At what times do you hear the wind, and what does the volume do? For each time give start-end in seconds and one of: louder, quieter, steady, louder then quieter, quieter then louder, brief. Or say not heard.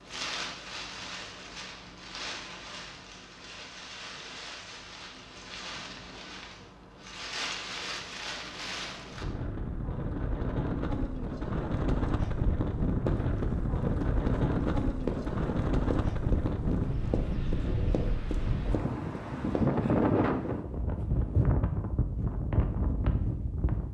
0.0-23.8 louder.